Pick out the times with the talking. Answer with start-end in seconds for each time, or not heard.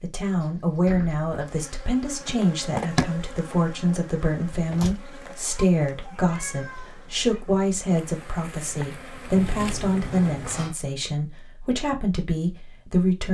0.0-13.2.